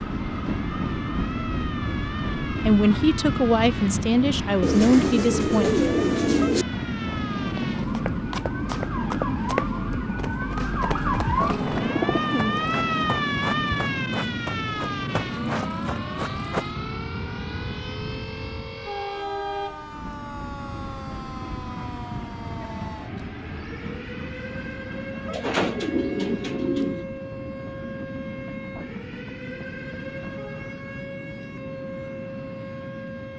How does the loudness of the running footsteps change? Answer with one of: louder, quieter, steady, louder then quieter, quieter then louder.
steady.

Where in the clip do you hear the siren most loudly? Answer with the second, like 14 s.
13 s.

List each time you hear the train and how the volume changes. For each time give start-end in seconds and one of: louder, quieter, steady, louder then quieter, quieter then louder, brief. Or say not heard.
0.0-33.3 quieter.